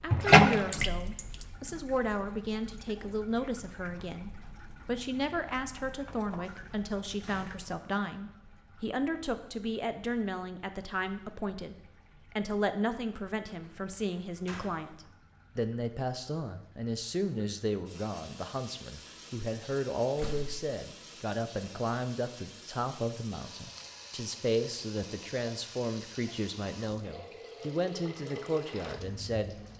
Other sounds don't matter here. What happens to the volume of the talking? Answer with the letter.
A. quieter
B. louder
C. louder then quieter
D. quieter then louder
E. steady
E.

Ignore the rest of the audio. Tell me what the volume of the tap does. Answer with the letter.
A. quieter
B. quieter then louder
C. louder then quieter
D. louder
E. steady
B.